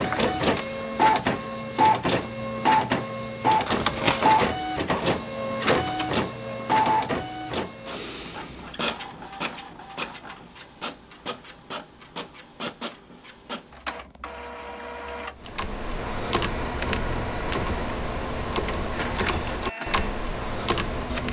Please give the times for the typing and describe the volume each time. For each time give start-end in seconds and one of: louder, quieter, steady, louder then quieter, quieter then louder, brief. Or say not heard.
15.3-21.2 steady.